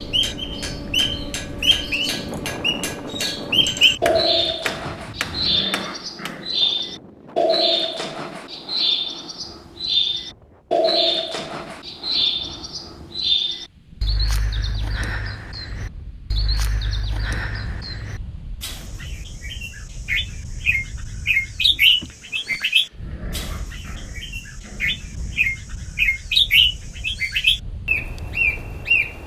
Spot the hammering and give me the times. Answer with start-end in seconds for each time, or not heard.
0.0-6.4.